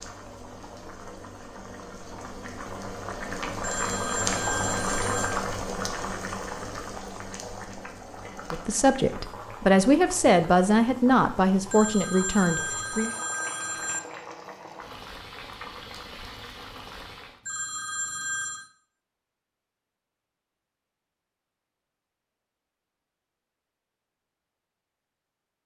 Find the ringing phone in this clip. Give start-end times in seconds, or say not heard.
3.6-5.5, 11.7-14.0, 17.4-18.7.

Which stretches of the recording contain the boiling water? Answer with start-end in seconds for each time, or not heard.
0.0-17.4.